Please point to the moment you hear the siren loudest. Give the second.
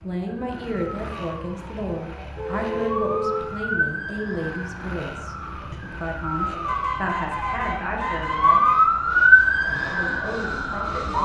9 s.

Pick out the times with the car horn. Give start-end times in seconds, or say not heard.
2.4-3.5, 6.5-8.9.